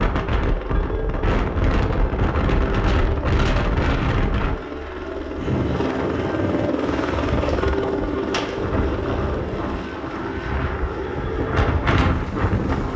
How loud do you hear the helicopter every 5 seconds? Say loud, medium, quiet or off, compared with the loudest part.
medium, loud, medium.